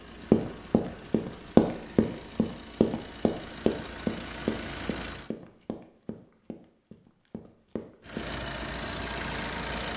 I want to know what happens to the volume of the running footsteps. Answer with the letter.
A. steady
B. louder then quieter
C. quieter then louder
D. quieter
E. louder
D.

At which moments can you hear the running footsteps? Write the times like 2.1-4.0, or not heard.
0.3-8.3.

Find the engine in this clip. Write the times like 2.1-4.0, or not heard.
0.0-5.3, 8.0-9.9.